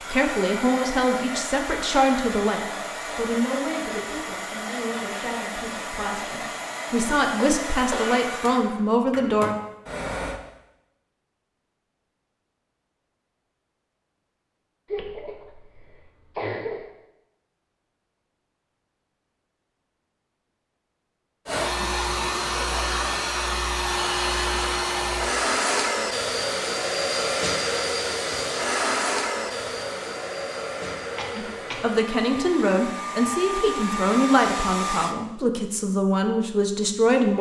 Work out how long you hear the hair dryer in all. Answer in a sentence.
You can hear the hair dryer for 24 seconds altogether.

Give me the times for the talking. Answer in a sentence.
You can hear the talking from 0.1 to 9.6 s and from 31.4 to 37.3 s.